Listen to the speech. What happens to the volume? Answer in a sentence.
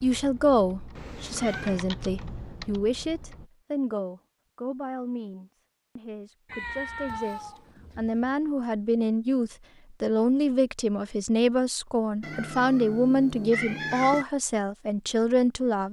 The loudness of the speech goes down, then up.